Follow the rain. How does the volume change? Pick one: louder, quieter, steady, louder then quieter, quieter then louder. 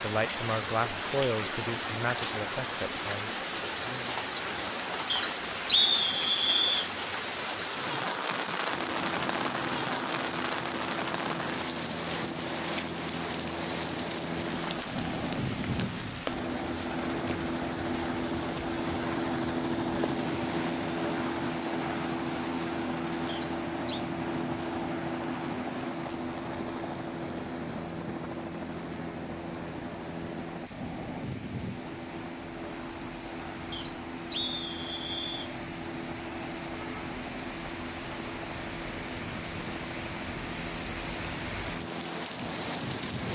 quieter then louder.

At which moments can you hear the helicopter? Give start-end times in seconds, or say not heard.
8.7-43.2.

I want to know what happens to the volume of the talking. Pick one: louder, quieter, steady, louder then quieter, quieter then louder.
quieter.